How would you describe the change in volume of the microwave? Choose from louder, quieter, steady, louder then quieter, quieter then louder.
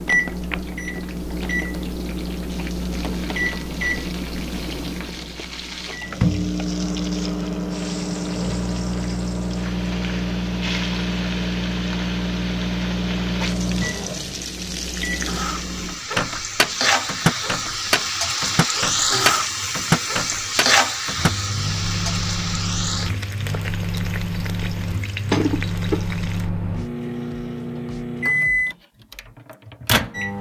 steady.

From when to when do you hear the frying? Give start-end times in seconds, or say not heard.
0.1-26.5.